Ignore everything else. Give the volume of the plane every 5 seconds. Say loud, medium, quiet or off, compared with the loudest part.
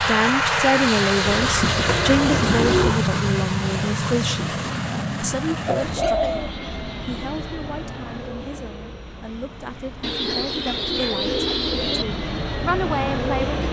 loud, medium, medium.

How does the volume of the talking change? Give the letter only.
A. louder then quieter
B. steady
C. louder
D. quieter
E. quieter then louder
E.